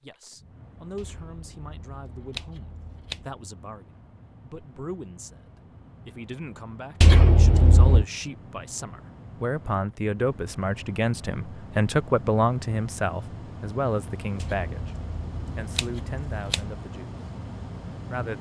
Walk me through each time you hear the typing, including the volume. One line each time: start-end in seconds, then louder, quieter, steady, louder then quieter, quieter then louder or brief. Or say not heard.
not heard.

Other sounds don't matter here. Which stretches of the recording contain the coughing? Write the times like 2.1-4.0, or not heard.
not heard.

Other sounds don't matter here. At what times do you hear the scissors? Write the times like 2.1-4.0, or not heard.
0.9-3.2, 7.0-8.1, 14.4-16.6.